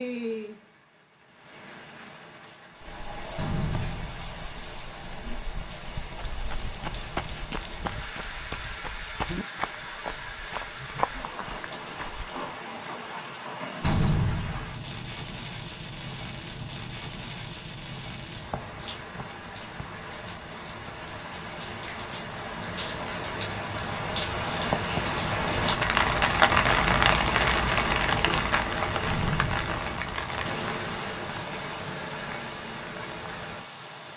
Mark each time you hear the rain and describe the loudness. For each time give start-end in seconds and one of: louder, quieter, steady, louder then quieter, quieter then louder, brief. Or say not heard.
0.0-34.1 louder.